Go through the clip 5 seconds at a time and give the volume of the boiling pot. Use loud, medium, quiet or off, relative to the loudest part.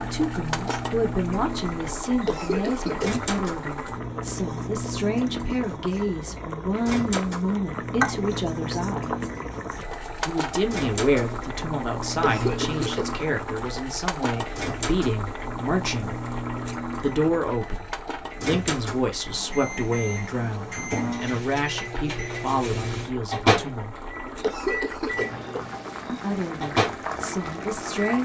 loud, loud, loud, medium, medium, loud.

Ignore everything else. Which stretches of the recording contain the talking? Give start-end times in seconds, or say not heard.
0.0-9.2, 10.2-16.1, 17.0-23.9, 26.1-28.2.